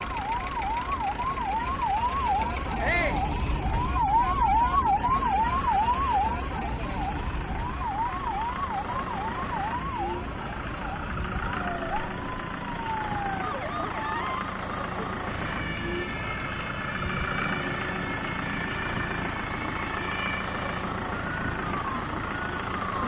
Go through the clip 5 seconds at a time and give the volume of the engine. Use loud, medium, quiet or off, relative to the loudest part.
medium, medium, loud, loud, loud.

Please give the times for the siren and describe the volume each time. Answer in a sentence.
The siren can be heard from 0.0 to 23.0 s, getting quieter.